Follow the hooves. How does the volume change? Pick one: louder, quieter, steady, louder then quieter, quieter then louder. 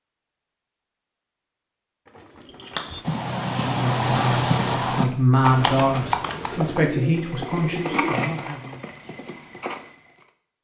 quieter.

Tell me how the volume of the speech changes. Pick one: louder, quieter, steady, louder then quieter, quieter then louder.
louder then quieter.